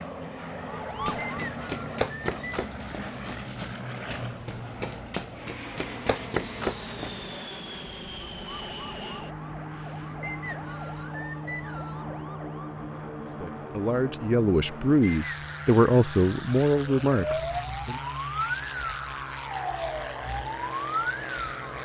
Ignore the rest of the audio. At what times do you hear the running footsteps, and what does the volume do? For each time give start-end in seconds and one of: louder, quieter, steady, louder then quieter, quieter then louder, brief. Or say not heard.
0.9-7.4 quieter then louder.